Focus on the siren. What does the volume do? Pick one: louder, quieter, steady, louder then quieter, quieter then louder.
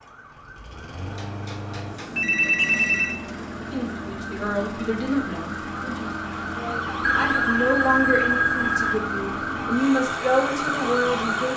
louder.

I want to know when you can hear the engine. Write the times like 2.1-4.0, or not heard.
0.0-11.5.